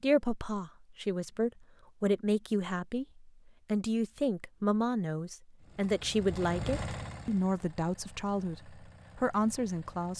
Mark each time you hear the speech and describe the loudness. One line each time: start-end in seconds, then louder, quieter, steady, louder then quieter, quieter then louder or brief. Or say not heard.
0.0-10.1 steady.